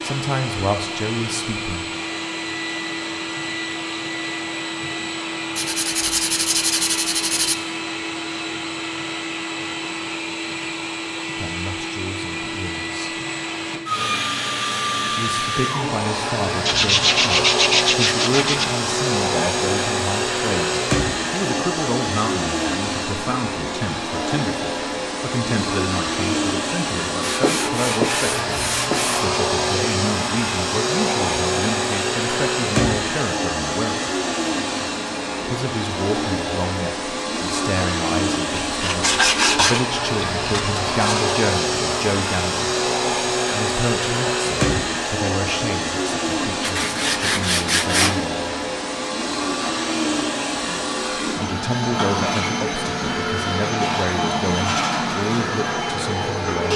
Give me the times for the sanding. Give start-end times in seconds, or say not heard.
5.5-7.5, 16.6-18.6, 27.2-29.2, 38.7-41.4, 46.6-48.2.